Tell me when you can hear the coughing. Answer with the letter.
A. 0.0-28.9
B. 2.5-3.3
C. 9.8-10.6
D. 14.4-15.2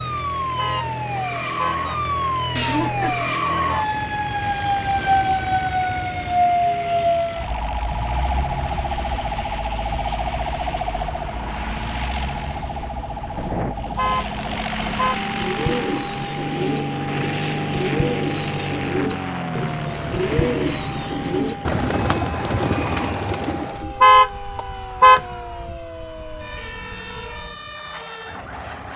B.